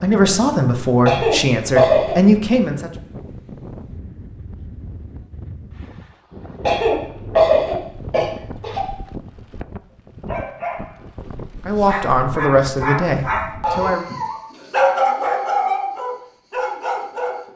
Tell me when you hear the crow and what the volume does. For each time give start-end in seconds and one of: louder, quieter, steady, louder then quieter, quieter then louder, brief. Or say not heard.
not heard.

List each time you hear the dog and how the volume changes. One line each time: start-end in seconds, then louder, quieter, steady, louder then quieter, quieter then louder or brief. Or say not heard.
10.2-17.5 louder then quieter.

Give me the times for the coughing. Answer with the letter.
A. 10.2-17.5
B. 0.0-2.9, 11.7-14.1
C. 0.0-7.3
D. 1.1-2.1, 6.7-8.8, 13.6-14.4
D.